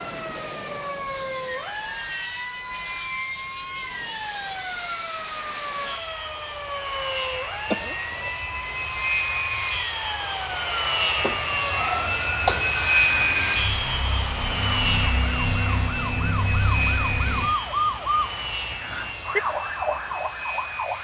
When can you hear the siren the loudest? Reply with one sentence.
The volume of the siren peaks at 18 seconds.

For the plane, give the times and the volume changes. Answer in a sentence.
The plane can be heard from 0.0 to 20.9 s, getting louder then quieter.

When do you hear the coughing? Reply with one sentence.
You can hear the coughing from 7.7 to 8.3 s and from 11.2 to 12.7 s.